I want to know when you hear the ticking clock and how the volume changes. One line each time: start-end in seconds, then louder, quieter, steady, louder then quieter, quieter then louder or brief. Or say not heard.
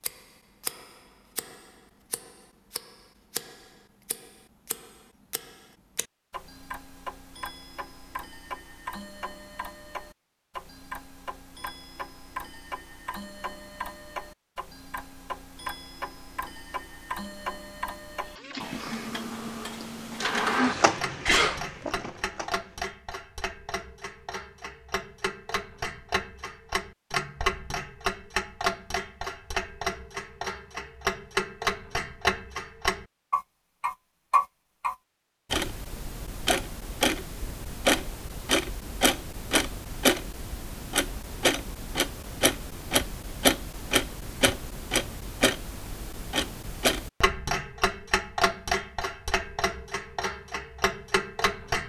0.0-51.8 louder.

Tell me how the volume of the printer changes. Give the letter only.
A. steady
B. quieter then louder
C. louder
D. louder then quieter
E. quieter
D.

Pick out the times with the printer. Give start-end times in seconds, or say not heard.
18.2-22.9.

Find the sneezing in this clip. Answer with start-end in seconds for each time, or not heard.
20.6-21.9.